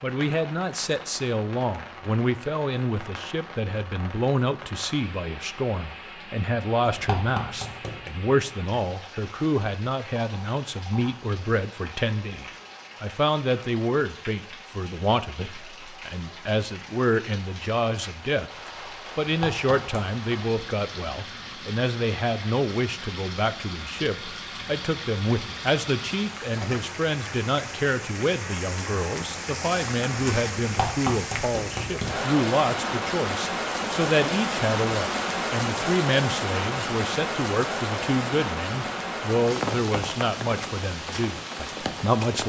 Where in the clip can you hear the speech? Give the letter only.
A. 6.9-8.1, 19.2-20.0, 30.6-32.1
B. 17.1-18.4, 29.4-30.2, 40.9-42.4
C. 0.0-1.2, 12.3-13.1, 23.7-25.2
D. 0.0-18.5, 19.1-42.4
D.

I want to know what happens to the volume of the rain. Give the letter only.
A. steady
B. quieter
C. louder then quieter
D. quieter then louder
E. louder
E.